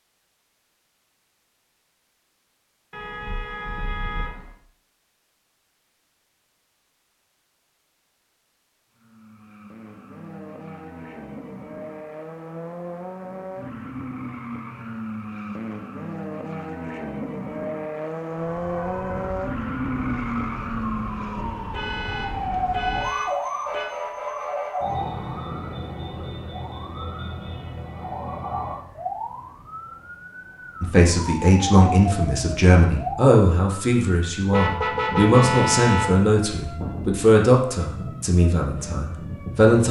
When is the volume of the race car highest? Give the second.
20 s.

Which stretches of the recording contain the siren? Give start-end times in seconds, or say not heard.
18.4-39.8.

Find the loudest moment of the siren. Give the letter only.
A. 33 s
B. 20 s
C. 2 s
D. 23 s
D.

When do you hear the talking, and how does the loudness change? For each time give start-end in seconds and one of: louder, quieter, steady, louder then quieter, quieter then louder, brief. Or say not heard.
30.8-39.8 quieter.